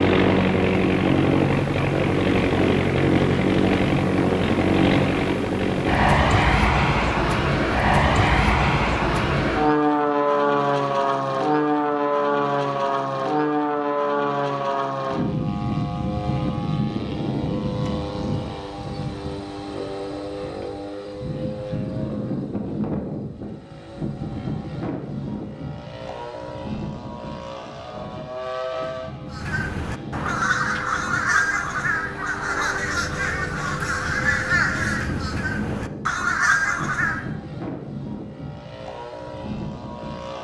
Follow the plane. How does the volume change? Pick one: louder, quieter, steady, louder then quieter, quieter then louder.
quieter.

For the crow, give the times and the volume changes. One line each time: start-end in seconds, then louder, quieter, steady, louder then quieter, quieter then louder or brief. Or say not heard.
29.2-37.3 steady.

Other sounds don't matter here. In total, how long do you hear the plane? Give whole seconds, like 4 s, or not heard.
40 s.